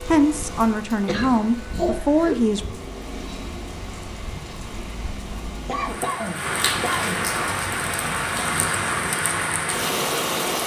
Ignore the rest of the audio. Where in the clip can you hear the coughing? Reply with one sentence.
The coughing can be heard from 1.1 to 2.6 s and from 5.7 to 7.2 s.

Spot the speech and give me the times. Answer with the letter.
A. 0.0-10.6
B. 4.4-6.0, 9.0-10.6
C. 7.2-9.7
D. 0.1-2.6
D.